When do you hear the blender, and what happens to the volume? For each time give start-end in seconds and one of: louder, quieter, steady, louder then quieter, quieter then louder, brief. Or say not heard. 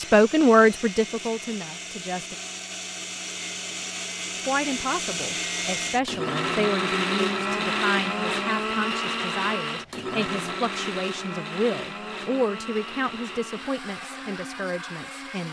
0.0-15.4 louder then quieter.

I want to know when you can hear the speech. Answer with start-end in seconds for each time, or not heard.
0.0-2.4, 4.3-15.4.